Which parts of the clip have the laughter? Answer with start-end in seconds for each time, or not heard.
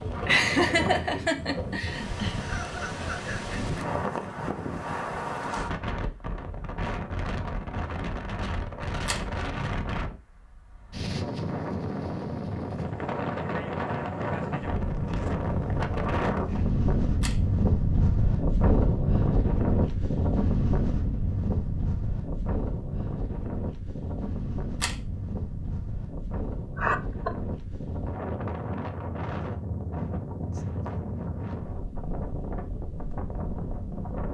0.2-2.4, 26.8-27.3.